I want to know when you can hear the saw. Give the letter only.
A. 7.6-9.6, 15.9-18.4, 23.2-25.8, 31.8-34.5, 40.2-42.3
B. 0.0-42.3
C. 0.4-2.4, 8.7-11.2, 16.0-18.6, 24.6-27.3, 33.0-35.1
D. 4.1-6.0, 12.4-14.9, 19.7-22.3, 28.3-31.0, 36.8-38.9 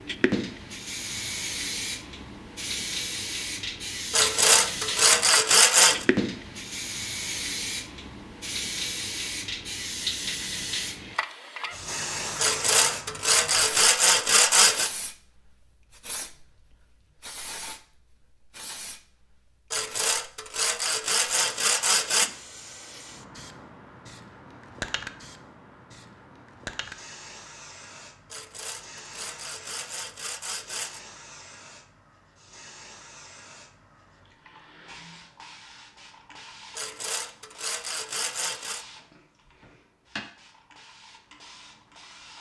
D.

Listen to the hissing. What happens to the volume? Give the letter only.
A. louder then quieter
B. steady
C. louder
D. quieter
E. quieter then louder
D.